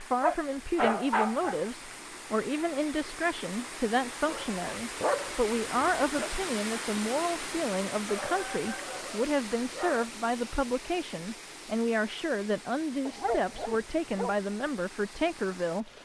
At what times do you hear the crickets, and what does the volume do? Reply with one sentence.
The crickets can't be heard in this clip.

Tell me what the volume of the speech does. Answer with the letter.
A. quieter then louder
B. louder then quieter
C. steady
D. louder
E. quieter
C.